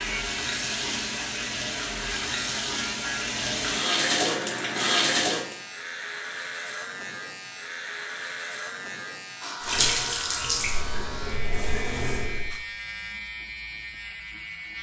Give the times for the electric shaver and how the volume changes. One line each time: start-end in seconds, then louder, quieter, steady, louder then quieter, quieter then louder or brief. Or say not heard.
0.0-14.7 steady.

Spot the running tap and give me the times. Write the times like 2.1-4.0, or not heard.
0.0-5.5, 9.6-12.6.